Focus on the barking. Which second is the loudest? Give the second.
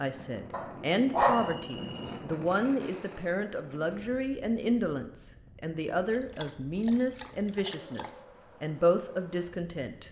1 s.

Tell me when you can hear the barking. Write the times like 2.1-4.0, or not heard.
0.5-2.1, 6.1-8.2.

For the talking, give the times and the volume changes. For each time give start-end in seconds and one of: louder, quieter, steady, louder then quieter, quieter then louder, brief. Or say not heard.
0.0-10.0 steady.